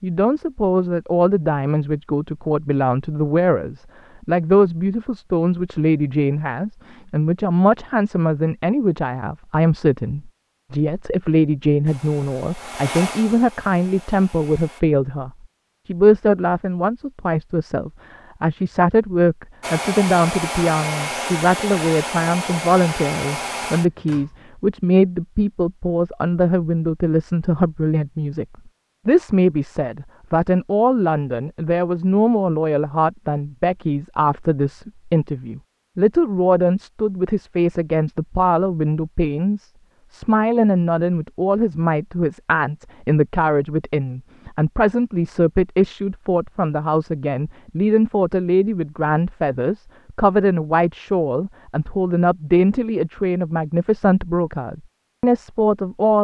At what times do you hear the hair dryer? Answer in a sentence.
The hair dryer can be heard from 11.8 to 14.8 s and from 19.6 to 24.4 s.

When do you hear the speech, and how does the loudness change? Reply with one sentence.
You can hear the speech from 0.0 to 28.4 s, at a steady volume; and from 29.1 to 56.1 s, at a steady volume.